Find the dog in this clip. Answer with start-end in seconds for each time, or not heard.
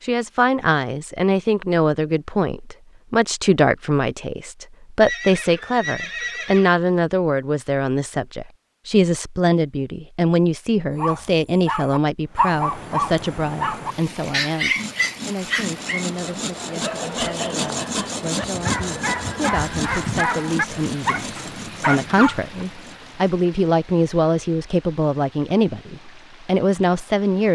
10.9-22.6.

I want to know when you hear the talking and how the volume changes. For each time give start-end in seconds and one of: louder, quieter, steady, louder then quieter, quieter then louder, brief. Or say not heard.
0.0-27.5 quieter then louder.